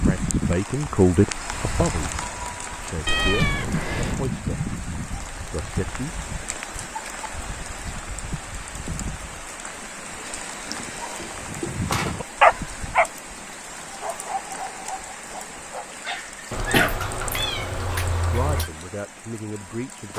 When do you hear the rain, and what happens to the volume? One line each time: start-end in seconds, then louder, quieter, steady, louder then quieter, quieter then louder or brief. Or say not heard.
0.0-20.1 quieter.